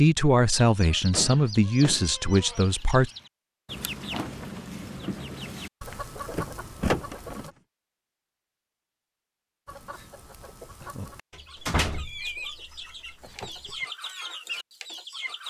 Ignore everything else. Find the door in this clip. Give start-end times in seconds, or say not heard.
1.1-2.0, 5.9-7.5, 11.3-13.8.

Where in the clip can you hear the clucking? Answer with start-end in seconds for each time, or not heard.
0.6-7.5, 9.7-15.4.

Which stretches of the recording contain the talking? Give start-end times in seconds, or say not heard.
0.0-3.1.